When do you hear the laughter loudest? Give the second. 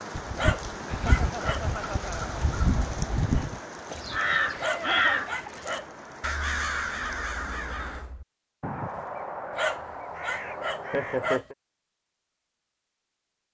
11 s.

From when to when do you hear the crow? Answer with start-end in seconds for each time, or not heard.
0.1-11.3.